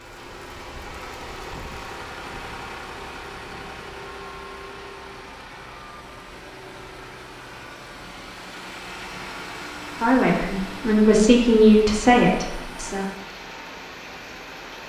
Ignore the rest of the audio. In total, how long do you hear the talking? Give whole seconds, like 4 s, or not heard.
3 s.